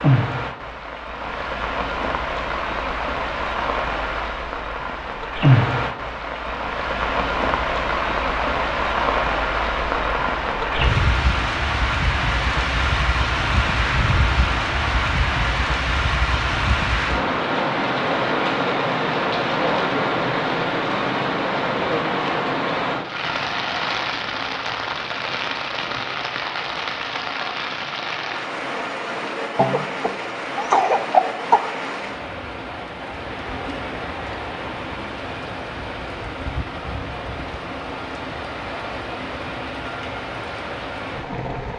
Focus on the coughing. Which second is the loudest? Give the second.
31 s.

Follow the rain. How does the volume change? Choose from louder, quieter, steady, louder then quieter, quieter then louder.
quieter.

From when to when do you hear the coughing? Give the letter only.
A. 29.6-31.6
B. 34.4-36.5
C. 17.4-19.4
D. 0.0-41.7
A.